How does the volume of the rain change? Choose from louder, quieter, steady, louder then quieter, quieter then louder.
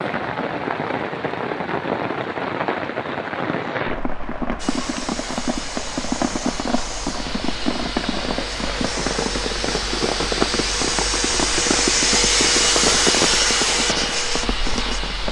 steady.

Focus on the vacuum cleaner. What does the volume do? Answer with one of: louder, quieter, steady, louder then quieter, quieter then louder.
louder.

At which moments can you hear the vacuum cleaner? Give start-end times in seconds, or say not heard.
4.5-15.2.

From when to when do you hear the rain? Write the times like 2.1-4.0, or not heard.
0.0-15.2.